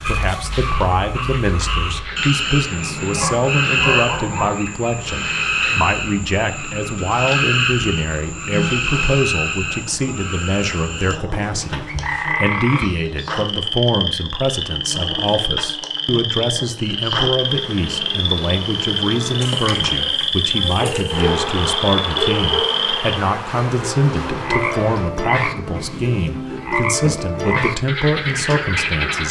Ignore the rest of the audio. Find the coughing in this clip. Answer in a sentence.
You can't hear the coughing here.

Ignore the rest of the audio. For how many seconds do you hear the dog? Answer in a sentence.
The dog can be heard for 4 seconds in total.